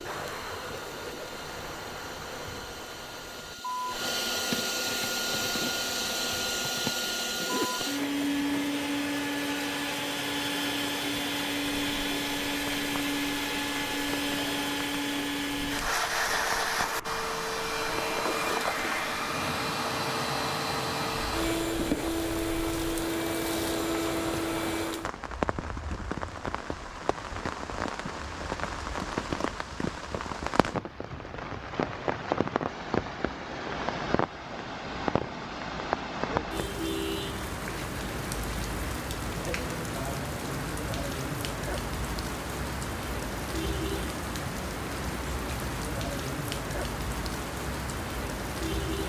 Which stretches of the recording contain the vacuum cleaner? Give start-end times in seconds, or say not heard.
0.0-25.1.